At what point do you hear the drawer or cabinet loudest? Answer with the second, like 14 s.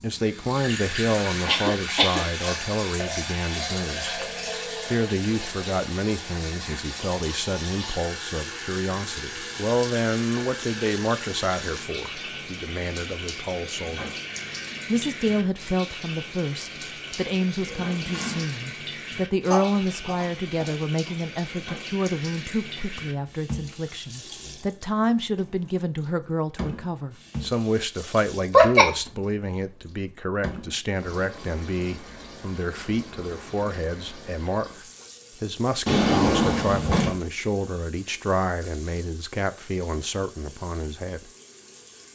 36 s.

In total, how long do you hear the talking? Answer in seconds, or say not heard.
40 s.